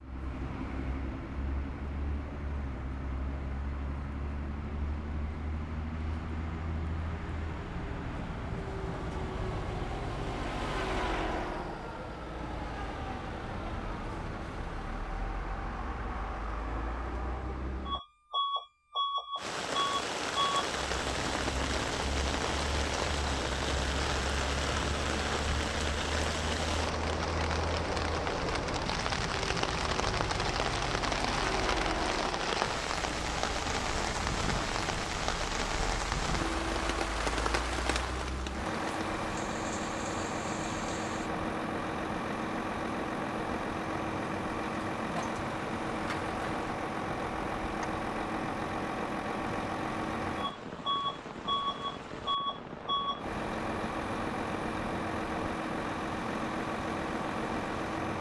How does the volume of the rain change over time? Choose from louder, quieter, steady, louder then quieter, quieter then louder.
quieter.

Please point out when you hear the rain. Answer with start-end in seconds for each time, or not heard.
19.4-58.1.